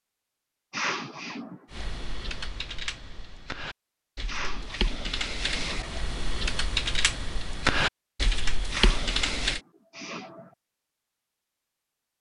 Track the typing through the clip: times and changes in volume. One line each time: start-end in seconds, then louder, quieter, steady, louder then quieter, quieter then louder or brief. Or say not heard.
1.7-9.6 louder.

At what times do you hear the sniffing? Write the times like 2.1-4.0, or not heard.
0.7-1.6, 4.2-6.0, 8.7-10.4.